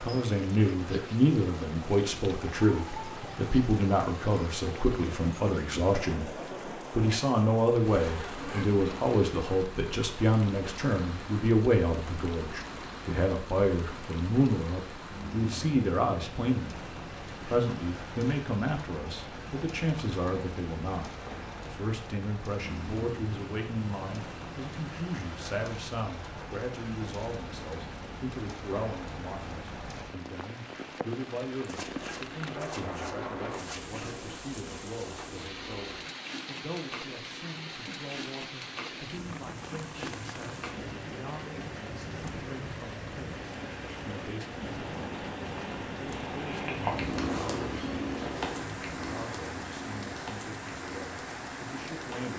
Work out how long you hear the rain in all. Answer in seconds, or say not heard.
52 s.